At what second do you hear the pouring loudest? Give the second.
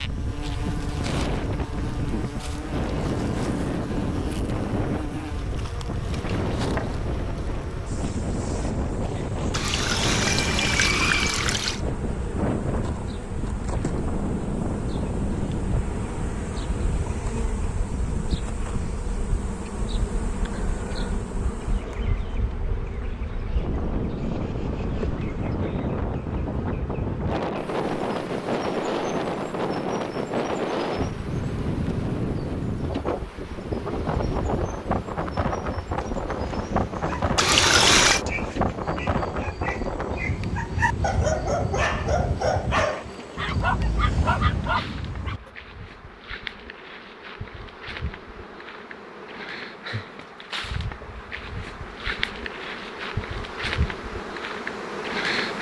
38 s.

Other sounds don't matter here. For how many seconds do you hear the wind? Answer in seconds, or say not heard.
45 s.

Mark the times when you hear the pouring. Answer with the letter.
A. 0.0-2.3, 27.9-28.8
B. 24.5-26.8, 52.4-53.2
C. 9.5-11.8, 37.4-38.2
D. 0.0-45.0
C.